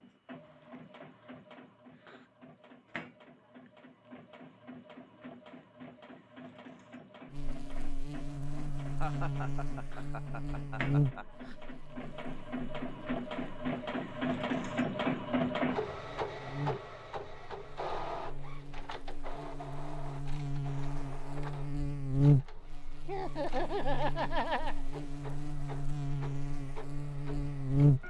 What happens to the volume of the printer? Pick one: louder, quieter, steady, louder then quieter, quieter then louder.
louder then quieter.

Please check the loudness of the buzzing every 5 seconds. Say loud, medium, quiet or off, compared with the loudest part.
off, medium, medium, quiet, loud, loud.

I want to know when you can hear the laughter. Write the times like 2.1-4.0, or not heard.
8.9-11.6, 23.1-24.8.